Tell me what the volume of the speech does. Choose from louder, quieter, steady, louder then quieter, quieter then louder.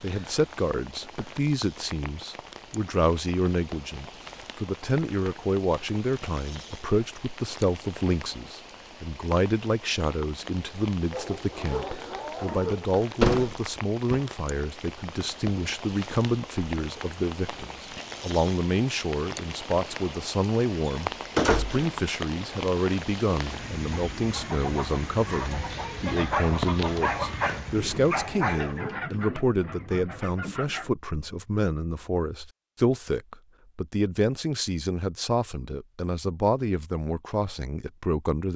steady.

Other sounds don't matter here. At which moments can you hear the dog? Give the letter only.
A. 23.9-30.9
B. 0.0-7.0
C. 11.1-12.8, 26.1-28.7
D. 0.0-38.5
C.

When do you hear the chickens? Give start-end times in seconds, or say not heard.
23.9-30.9.